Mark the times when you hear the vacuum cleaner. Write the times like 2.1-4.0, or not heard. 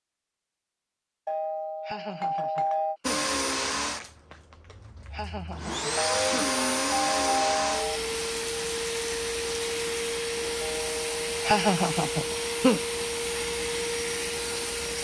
3.0-15.0.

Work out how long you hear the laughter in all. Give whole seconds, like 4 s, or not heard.
4 s.